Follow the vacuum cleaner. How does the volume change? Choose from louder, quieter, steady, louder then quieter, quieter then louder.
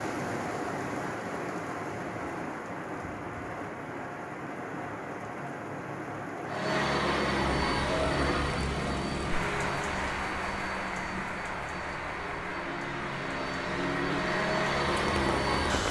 quieter then louder.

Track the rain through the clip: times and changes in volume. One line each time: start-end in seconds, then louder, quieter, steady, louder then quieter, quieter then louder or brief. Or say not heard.
0.0-15.8 steady.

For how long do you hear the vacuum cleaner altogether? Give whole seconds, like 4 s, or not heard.
9 s.